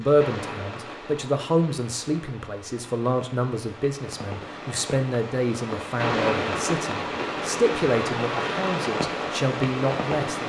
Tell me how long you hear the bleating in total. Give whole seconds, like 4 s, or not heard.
not heard.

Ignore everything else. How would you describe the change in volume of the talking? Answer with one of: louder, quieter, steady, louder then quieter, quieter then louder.
steady.